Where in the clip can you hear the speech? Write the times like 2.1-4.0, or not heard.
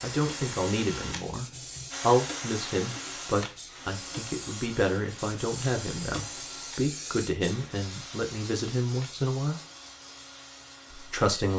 0.0-9.6, 10.9-11.5.